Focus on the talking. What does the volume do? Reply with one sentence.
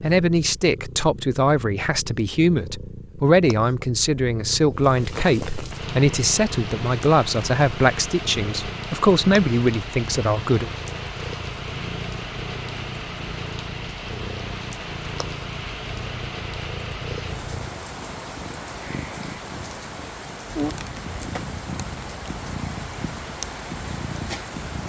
The loudness of the talking stays about the same.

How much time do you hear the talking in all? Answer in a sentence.
The talking can be heard for 11 seconds in total.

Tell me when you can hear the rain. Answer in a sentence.
You can hear the rain from 4.7 to 24.8 s.